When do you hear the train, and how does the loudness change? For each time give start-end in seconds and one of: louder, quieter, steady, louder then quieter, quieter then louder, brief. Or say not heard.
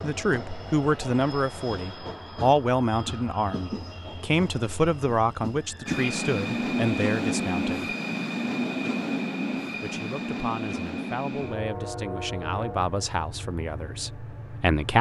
0.0-14.9 louder then quieter.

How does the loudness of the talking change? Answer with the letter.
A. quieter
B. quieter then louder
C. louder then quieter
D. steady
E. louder
B.